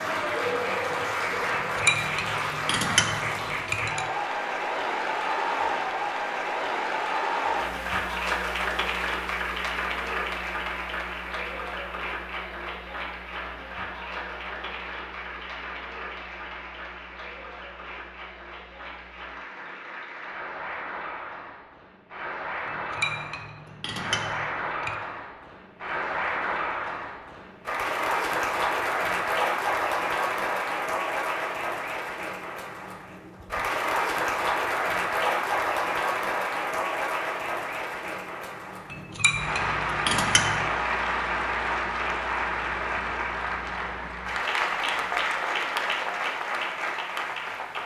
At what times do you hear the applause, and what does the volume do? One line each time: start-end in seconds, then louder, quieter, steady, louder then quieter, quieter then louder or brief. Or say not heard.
0.0-47.8 quieter then louder.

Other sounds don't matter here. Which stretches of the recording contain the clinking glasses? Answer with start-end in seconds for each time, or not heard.
1.5-4.0, 22.6-24.9, 38.9-40.6.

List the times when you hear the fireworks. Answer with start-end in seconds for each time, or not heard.
not heard.